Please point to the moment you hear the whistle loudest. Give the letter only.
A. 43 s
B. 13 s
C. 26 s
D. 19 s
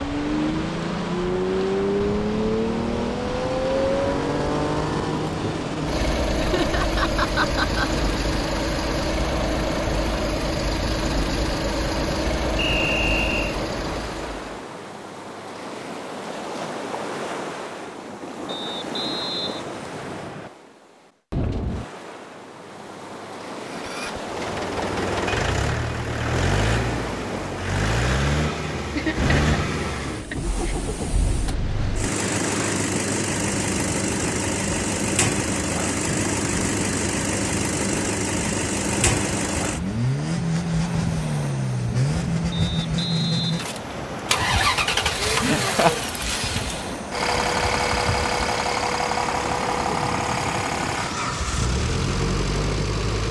B.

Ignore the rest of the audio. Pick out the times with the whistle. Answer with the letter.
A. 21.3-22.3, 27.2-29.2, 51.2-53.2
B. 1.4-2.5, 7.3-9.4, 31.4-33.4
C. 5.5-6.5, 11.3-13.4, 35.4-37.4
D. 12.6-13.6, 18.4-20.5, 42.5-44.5
D.